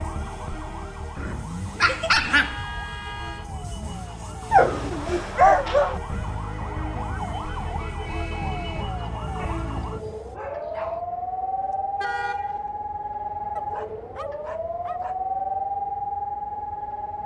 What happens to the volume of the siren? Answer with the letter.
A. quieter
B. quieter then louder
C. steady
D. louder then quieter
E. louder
E.